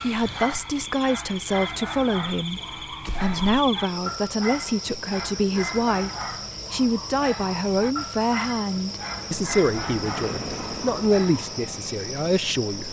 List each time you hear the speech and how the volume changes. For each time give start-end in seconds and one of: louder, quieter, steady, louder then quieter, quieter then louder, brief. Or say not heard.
0.0-2.6 brief
3.2-12.8 steady.